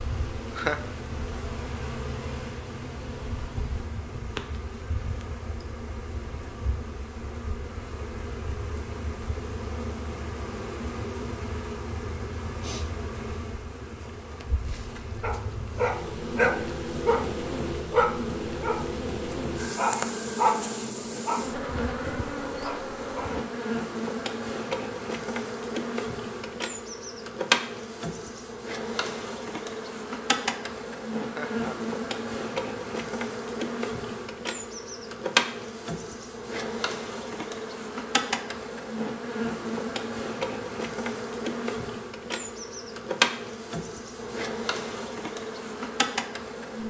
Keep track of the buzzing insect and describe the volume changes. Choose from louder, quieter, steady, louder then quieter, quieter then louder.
louder.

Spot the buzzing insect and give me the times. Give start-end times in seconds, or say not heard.
0.0-46.8.